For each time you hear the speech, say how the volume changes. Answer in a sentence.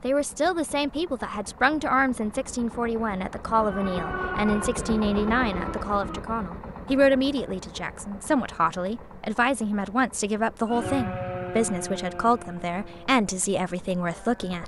The speech can be heard from 0.0 to 14.6 s, at a steady volume.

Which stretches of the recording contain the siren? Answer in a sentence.
You can hear the siren from 3.5 to 6.2 s and from 10.7 to 14.6 s.